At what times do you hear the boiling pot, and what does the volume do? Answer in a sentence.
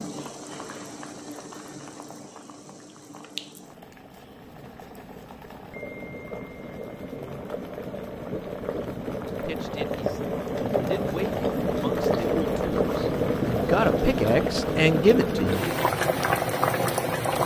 The boiling pot can be heard from 0.0 to 17.4 s, getting louder.